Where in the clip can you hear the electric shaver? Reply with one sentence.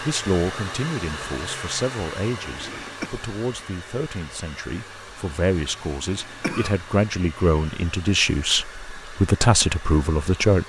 You can't hear the electric shaver here.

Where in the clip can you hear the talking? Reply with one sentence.
The talking can be heard from 0.0 to 10.6 s.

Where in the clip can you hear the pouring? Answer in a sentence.
You can't hear the pouring here.